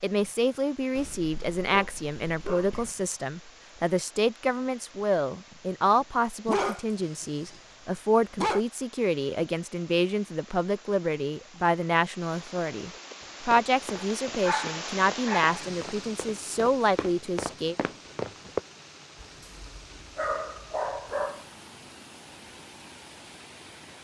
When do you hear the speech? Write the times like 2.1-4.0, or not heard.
0.0-17.8.